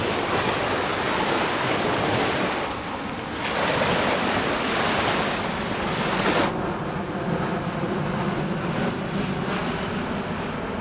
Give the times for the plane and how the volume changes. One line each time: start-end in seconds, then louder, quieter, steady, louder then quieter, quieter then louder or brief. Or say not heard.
0.1-10.7 louder.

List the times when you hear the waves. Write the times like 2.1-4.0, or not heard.
0.0-6.5.